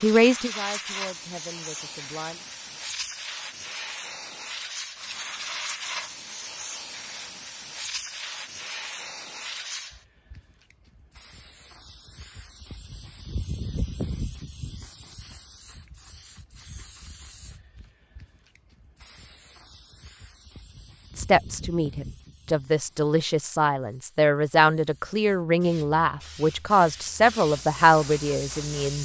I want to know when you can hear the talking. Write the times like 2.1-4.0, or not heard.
0.0-2.4, 21.1-29.0.